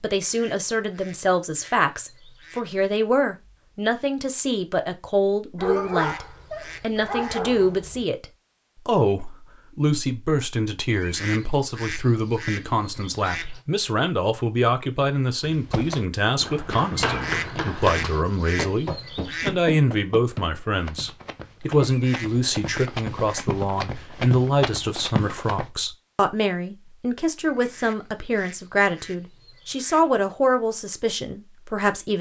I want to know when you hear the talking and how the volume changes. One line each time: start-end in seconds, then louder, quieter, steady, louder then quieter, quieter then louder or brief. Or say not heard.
0.0-8.2 steady
8.8-32.1 steady.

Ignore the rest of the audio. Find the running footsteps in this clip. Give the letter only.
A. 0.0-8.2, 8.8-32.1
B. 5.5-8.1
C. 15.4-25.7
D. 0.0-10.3
C.